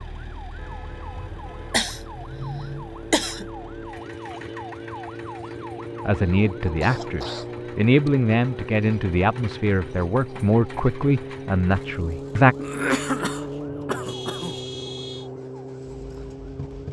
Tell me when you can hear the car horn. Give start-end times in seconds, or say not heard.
0.6-1.9, 14.1-15.3.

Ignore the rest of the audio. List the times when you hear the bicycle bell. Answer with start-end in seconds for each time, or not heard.
not heard.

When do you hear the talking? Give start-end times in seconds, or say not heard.
6.0-12.6.